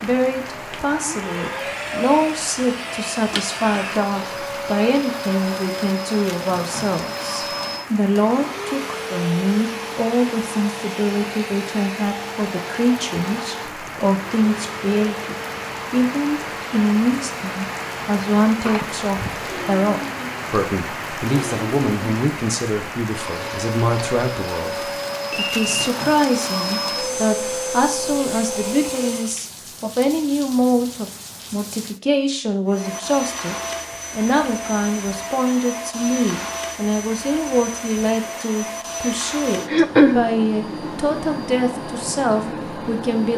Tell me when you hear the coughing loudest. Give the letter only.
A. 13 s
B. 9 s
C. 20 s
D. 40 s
D.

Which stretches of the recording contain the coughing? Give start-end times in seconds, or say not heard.
18.6-19.5, 39.6-40.2.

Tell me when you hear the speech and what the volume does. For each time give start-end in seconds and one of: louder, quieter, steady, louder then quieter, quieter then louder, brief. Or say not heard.
0.0-43.3 steady.